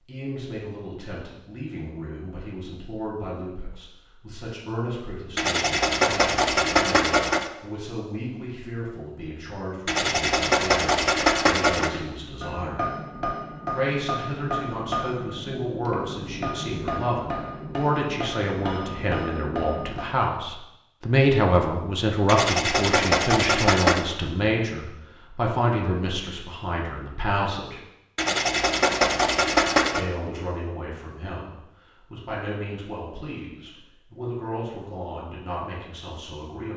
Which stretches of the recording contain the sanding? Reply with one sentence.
You can hear the sanding from 5.3 to 7.5 s, from 9.8 to 11.9 s, from 22.2 to 24.1 s and from 28.1 to 30.1 s.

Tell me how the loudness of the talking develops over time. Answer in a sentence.
The loudness of the talking goes up, then down.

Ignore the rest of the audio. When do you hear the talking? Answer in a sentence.
You can hear the talking from 0.1 to 12.9 s, from 13.7 to 27.8 s and from 29.9 to 36.7 s.